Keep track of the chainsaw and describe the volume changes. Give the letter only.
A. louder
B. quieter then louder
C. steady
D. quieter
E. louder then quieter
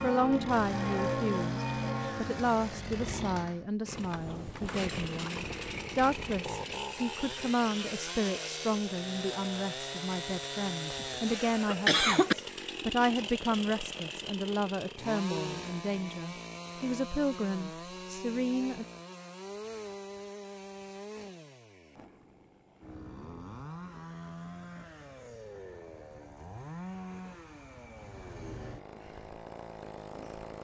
D.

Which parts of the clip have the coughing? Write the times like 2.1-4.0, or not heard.
10.9-12.3.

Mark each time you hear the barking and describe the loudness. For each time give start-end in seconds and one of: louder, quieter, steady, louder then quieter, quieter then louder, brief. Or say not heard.
not heard.